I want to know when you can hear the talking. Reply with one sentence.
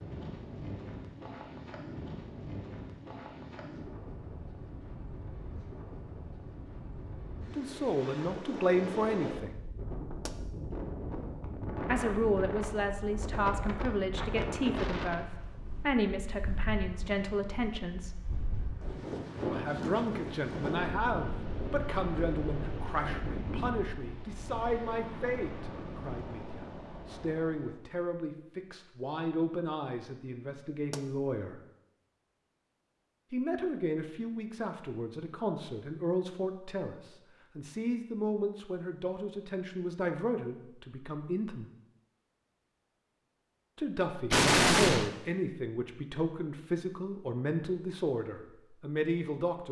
You can hear the talking from 7.5 to 9.6 s, from 11.8 to 18.2 s, from 19.4 to 31.6 s, from 33.3 to 41.7 s and from 43.8 to 49.6 s.